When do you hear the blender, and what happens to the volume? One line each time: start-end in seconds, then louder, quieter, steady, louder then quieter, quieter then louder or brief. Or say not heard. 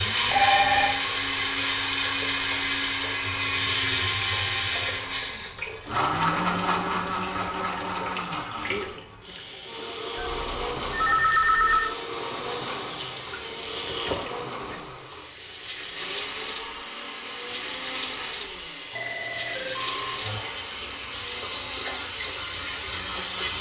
0.0-23.5 quieter.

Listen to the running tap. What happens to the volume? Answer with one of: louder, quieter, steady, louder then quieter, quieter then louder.
louder.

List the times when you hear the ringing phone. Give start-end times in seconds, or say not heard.
0.3-0.9, 10.2-11.9, 18.9-20.2.